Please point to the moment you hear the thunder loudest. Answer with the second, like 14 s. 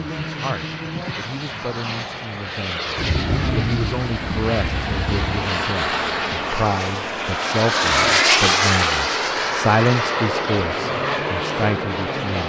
3 s.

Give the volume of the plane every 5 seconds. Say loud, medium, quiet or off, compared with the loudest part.
medium, loud, loud.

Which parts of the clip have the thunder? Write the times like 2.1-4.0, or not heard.
3.0-5.5.